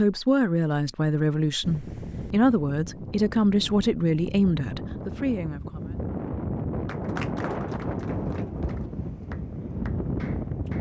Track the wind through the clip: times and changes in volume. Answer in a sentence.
You can hear the wind from 1.6 to 10.7 s, getting louder.